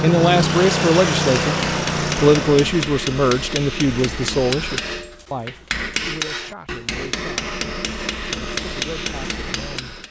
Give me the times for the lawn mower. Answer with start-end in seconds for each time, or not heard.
0.0-2.9.